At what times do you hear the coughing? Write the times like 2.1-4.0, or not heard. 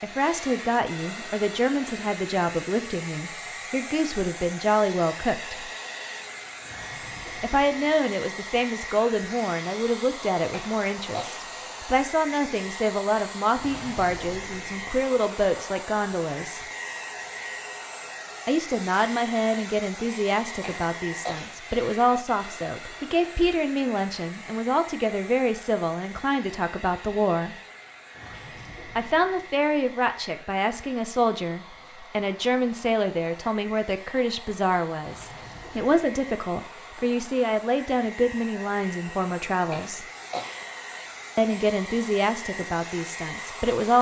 10.5-11.4, 20.6-21.6, 39.7-40.6.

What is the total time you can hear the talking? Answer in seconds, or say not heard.
38 s.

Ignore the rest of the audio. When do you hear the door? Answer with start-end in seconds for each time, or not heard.
not heard.